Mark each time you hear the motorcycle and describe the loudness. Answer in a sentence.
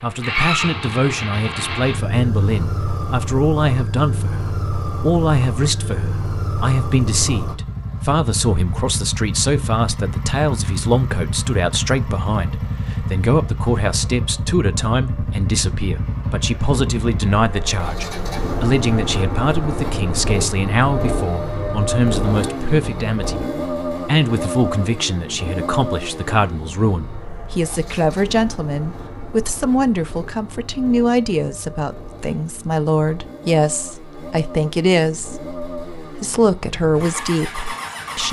You can hear the motorcycle from 0.0 to 38.2 s, getting quieter.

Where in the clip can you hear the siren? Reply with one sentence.
You can't hear the siren here.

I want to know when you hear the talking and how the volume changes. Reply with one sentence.
You can hear the talking from 0.0 to 38.2 s, at a steady volume.